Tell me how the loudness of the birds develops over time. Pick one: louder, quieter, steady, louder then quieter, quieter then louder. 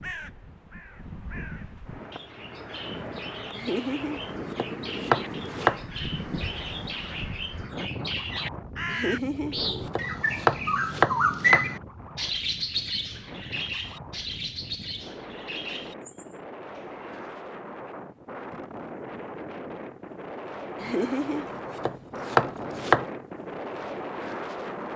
louder then quieter.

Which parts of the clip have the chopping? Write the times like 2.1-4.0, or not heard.
3.5-5.8, 8.9-11.7, 20.8-23.1.